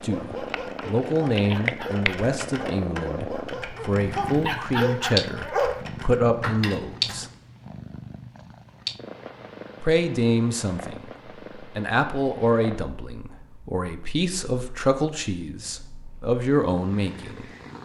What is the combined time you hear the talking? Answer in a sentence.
You can hear the talking for 14 seconds altogether.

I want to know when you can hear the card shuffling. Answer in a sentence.
The card shuffling can't be heard in this clip.